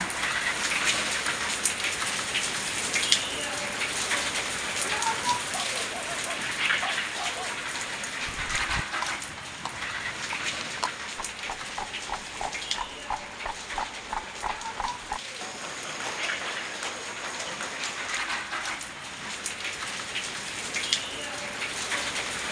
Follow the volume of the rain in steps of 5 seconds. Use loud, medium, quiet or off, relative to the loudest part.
loud, loud, medium, medium, loud.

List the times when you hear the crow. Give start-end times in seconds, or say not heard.
not heard.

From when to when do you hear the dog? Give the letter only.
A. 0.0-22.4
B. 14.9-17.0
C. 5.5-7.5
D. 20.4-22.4
C.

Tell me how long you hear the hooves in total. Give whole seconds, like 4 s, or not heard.
10 s.